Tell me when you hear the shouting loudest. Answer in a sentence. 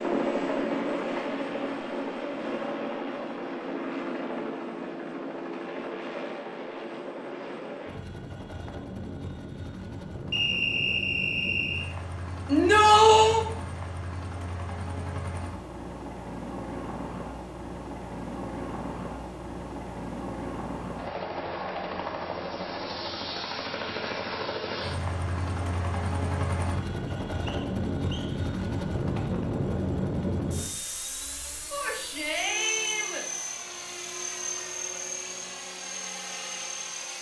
The loudest moment of the shouting is at 13 seconds.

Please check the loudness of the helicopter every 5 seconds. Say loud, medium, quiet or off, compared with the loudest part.
loud, medium, medium, medium, loud, loud, loud, medium.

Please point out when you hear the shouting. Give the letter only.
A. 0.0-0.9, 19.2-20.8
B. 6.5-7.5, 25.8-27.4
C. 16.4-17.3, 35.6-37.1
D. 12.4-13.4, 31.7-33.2
D.